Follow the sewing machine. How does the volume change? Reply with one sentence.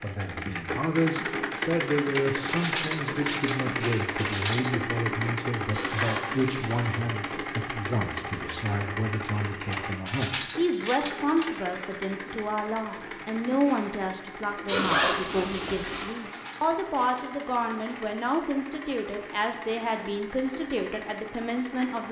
The volume of the sewing machine goes down.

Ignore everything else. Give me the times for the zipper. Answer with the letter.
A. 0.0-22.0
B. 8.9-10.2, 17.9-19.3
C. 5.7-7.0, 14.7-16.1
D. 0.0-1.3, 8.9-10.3
C.